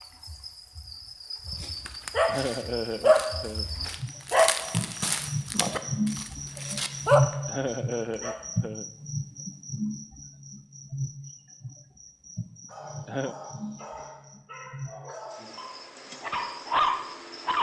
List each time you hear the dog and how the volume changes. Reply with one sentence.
The dog can be heard from 1.5 to 8.3 s, getting quieter then louder; and from 12.7 to 17.5 s, getting louder.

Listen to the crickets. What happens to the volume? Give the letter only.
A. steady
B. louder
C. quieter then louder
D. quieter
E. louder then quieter
E.